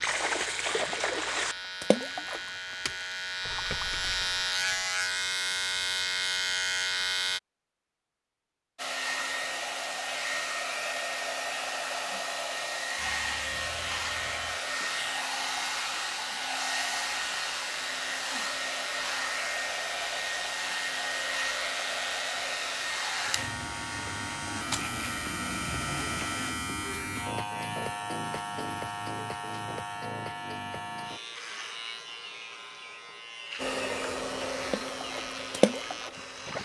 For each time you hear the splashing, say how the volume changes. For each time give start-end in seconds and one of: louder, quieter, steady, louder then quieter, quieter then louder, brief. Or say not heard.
0.0-4.9 quieter
34.6-36.5 brief.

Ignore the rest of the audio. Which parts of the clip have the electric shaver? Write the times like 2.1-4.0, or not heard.
0.0-7.4, 12.9-36.5.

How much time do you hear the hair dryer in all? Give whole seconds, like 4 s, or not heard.
21 s.